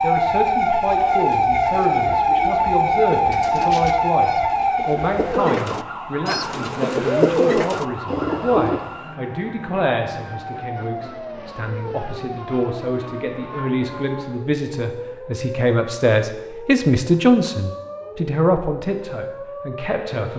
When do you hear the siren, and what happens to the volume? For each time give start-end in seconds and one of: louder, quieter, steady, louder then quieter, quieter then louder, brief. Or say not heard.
0.0-20.3 quieter.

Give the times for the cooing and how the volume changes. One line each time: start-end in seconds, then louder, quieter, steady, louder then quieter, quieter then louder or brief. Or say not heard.
0.8-8.9 louder.